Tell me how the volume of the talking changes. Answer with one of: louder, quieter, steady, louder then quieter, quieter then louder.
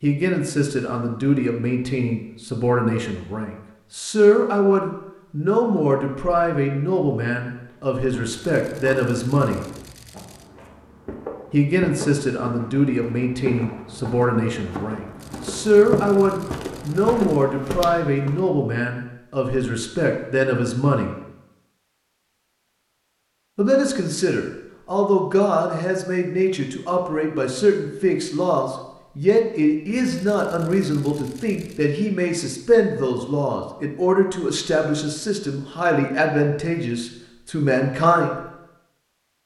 steady.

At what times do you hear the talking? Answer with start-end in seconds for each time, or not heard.
0.0-9.6, 11.5-21.1, 23.6-38.4.